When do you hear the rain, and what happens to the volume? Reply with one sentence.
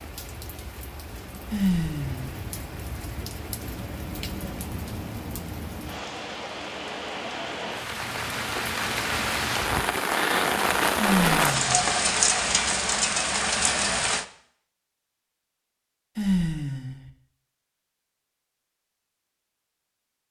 You can hear the rain from 0.0 to 14.2 s, getting louder.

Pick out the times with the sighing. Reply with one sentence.
The sighing can be heard from 1.5 to 2.5 s, from 10.9 to 11.9 s and from 16.1 to 17.1 s.